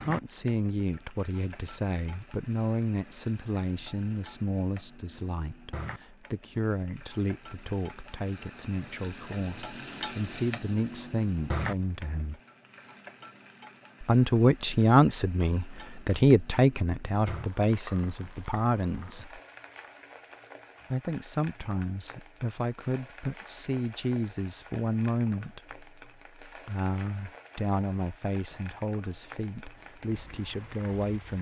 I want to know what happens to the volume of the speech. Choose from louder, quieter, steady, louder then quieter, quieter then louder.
louder then quieter.